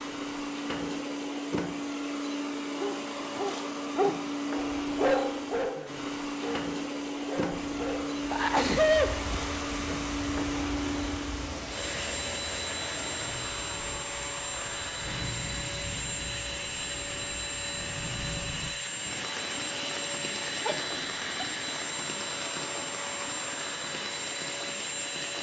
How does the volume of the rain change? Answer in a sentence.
The volume of the rain stays about the same.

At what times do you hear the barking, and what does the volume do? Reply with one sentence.
The barking can be heard from 2.8 to 8.4 s, getting quieter.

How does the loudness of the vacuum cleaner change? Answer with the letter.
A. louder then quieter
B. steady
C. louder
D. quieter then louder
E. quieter
B.